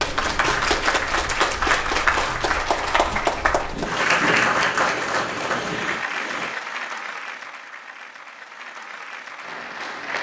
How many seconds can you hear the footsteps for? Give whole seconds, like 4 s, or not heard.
not heard.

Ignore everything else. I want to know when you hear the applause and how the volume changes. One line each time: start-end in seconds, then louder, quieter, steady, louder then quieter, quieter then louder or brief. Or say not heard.
0.0-10.1 quieter.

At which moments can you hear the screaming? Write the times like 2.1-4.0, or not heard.
not heard.